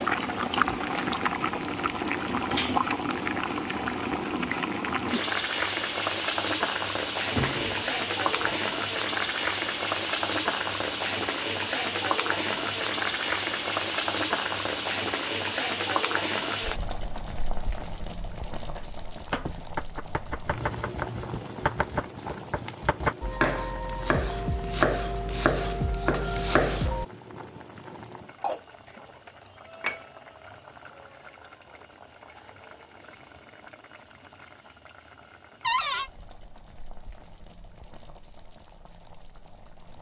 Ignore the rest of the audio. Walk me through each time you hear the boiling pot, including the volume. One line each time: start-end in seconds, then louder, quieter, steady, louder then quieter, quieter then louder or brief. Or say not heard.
0.0-39.9 quieter.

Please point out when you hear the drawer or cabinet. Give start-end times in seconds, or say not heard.
7.2-8.6, 35.6-36.1.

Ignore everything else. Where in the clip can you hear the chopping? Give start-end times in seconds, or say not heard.
18.8-27.1.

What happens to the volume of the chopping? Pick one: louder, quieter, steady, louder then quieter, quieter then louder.
louder.